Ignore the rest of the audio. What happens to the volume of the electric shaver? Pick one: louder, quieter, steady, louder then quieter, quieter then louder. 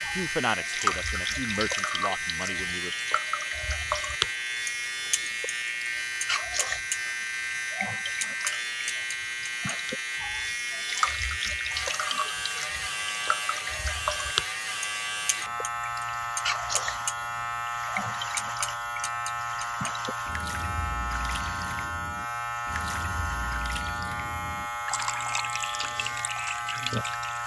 steady.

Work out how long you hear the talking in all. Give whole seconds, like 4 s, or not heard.
3 s.